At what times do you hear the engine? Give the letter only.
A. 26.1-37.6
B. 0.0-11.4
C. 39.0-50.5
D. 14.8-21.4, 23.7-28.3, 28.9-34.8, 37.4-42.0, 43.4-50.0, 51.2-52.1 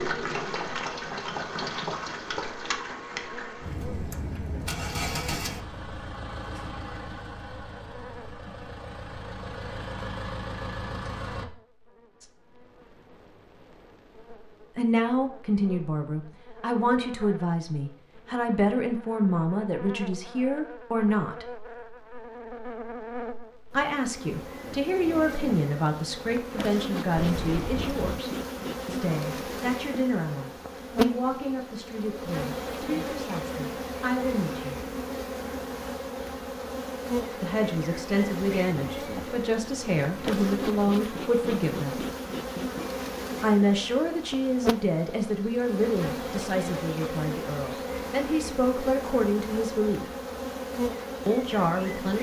B.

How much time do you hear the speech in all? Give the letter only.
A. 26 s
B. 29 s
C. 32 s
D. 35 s
B.